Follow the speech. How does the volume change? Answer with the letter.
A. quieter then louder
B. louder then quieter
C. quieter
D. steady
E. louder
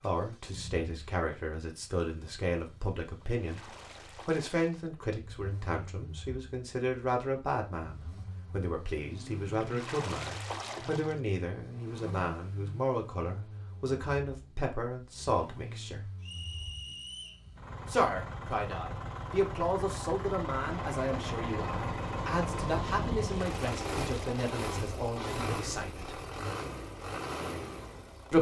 D.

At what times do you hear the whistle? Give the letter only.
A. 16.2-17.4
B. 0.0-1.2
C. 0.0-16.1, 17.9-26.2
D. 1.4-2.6
A.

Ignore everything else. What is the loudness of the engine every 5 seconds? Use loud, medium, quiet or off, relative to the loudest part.
quiet, quiet, medium, medium, loud, loud.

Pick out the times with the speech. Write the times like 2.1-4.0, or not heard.
0.0-16.1, 17.9-26.2.